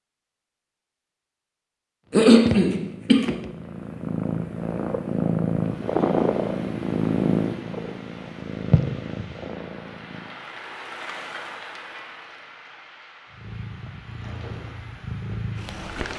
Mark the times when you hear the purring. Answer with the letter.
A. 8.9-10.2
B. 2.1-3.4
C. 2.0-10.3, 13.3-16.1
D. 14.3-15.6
C.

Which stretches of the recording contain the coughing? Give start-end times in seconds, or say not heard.
2.1-3.4.